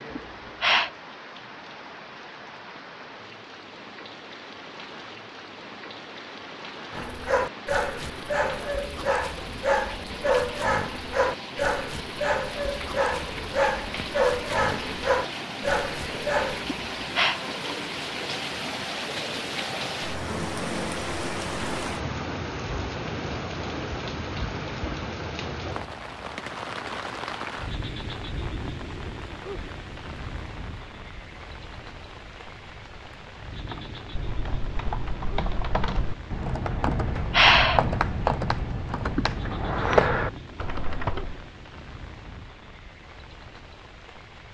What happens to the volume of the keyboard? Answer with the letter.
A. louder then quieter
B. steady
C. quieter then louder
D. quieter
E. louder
E.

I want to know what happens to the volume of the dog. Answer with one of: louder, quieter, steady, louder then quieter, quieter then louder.
steady.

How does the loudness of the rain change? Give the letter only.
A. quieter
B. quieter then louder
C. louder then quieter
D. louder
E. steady
C.